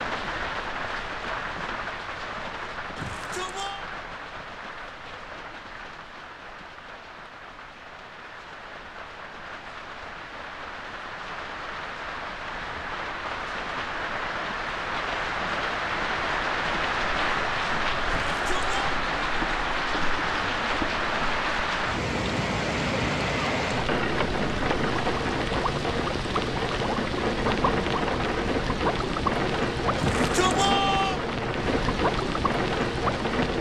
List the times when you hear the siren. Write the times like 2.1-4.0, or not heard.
not heard.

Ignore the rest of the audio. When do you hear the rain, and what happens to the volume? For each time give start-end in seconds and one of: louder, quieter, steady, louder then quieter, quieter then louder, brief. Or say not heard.
0.0-33.5 louder.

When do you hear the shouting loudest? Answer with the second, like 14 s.
31 s.